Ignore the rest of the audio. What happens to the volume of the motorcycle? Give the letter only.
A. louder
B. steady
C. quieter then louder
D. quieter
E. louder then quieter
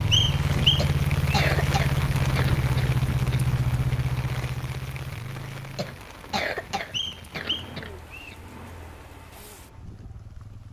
D.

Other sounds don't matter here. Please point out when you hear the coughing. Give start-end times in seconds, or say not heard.
0.8-3.4, 5.8-8.3.